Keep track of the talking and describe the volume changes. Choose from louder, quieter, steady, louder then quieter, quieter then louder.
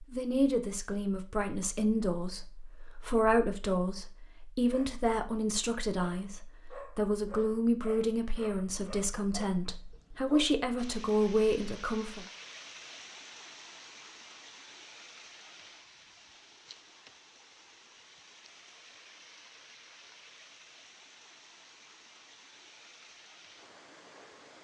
steady.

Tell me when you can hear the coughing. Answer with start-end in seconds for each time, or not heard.
not heard.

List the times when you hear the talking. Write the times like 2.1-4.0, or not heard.
0.0-12.2.